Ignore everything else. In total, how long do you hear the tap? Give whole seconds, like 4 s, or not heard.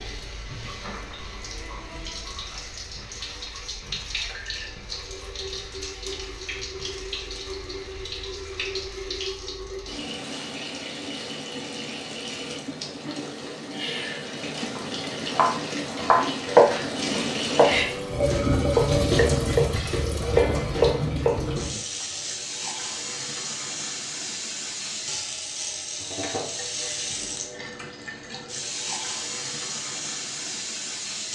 31 s.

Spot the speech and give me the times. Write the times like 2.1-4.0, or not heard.
not heard.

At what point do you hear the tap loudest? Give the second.
19 s.